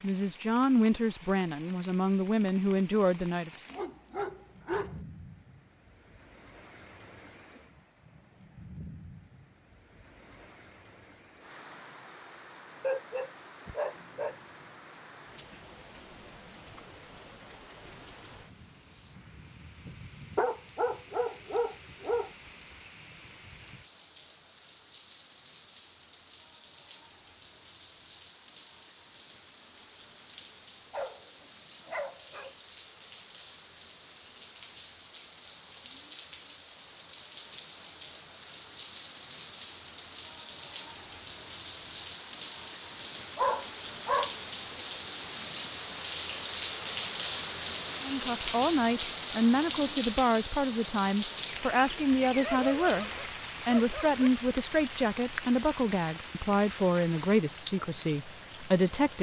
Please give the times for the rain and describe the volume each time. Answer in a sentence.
You can hear the rain from 0.0 to 59.1 s, getting louder.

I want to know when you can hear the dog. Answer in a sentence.
The dog can be heard from 3.7 to 5.0 s, from 12.8 to 14.3 s, from 20.4 to 22.3 s, from 30.9 to 32.5 s, from 43.4 to 44.4 s and from 52.4 to 54.3 s.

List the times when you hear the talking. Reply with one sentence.
You can hear the talking from 0.0 to 3.5 s and from 48.0 to 59.1 s.